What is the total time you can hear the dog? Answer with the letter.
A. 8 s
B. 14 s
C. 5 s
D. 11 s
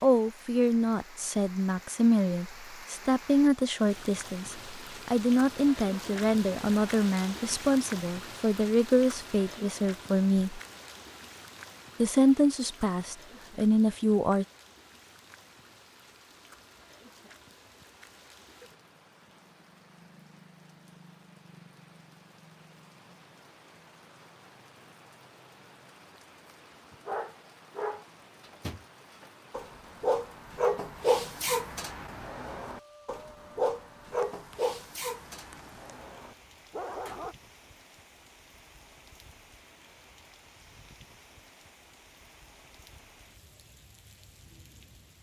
D.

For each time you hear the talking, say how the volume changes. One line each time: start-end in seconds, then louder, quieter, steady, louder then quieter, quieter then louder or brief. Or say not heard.
0.0-10.6 steady
12.0-14.4 brief.